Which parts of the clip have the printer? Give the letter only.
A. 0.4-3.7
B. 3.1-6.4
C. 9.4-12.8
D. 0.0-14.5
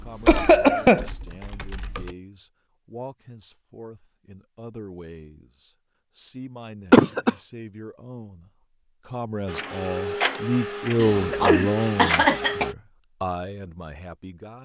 C.